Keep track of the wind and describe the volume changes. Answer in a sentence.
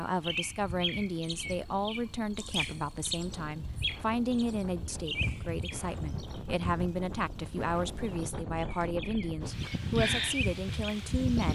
The loudness of the wind goes up.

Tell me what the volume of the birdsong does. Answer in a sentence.
The volume of the birdsong goes down, then up.